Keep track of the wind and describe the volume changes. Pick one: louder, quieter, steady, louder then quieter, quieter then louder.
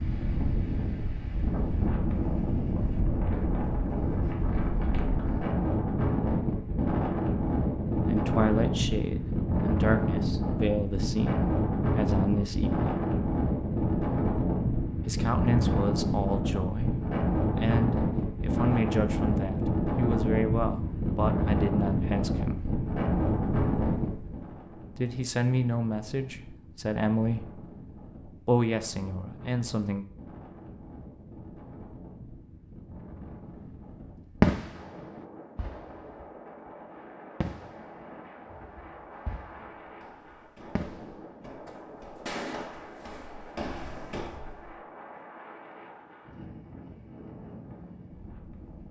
quieter.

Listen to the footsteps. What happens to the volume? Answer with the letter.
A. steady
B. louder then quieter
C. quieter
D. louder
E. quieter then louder
D.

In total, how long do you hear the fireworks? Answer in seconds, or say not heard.
7 s.